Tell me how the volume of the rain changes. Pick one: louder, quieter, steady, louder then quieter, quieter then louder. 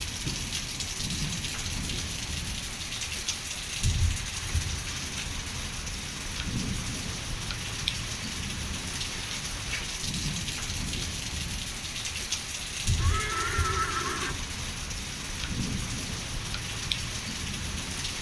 steady.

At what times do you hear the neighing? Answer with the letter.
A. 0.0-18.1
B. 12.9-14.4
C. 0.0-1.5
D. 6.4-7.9
B.